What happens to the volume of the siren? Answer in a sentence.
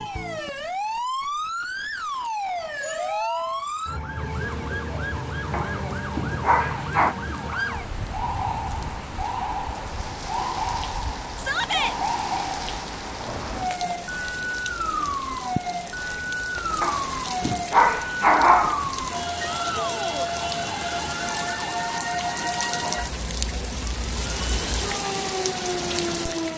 The volume of the siren stays about the same.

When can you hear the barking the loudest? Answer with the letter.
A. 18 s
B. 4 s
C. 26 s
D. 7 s
A.